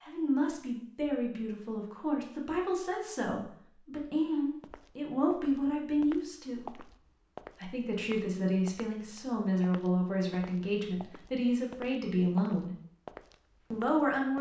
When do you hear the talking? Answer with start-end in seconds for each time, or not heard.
0.0-6.8, 7.6-12.7, 13.7-14.3.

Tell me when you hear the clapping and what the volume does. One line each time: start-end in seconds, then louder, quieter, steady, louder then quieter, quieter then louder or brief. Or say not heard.
not heard.